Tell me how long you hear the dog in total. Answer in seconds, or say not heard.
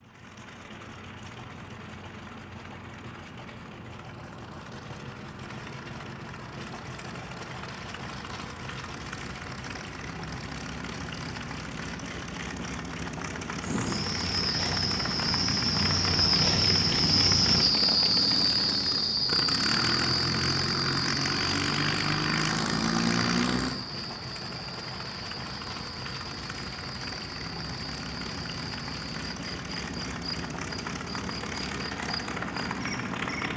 not heard.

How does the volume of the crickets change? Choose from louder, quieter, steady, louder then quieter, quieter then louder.
quieter.